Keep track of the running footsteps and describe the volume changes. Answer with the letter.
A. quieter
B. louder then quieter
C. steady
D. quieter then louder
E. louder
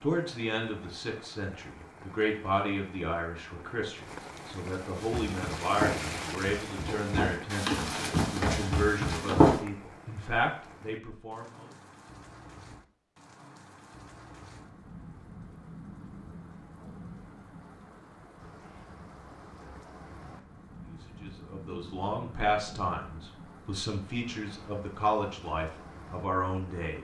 D.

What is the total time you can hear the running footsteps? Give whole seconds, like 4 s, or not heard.
5 s.